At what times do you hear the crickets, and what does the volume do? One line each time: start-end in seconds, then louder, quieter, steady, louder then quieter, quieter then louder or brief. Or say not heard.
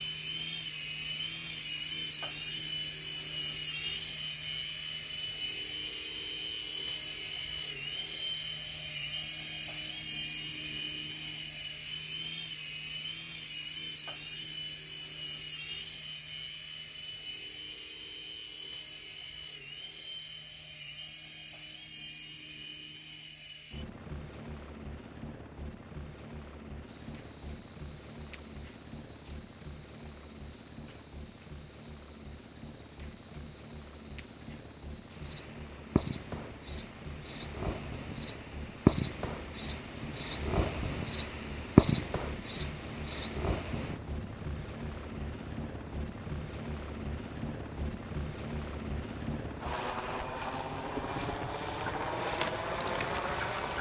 26.9-53.7 louder then quieter.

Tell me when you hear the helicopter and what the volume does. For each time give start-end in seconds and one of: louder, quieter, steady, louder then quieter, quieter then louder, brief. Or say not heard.
0.0-53.7 quieter then louder.